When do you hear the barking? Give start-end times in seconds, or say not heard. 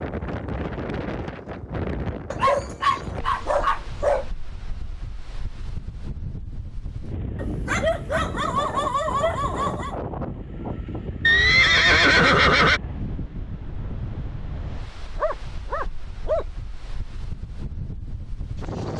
2.3-4.3, 7.3-9.9, 15.2-16.4.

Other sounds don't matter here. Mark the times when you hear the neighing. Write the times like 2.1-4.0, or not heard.
11.2-12.8.